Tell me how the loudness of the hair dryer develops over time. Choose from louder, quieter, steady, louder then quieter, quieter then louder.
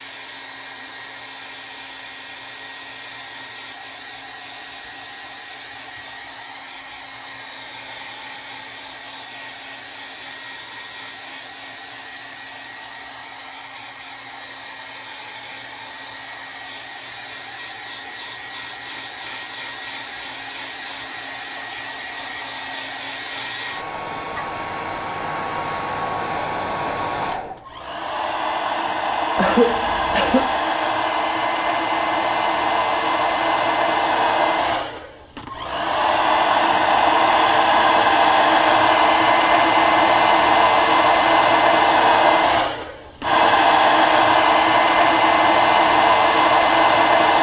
louder.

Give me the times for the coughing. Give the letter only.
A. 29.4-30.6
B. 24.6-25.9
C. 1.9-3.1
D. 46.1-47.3
A.